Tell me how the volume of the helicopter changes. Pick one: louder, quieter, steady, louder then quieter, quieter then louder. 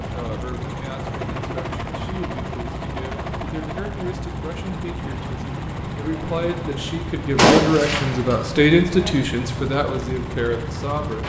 steady.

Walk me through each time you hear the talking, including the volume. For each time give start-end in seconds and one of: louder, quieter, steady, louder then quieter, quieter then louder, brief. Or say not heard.
0.0-11.2 louder.